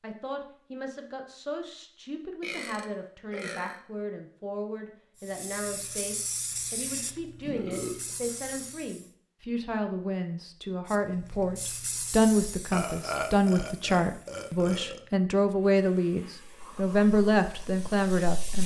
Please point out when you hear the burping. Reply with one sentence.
The burping can be heard from 2.4 to 3.8 s, from 7.5 to 8.1 s and from 12.7 to 15.0 s.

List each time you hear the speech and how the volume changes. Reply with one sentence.
The speech can be heard from 0.0 to 18.6 s, getting louder.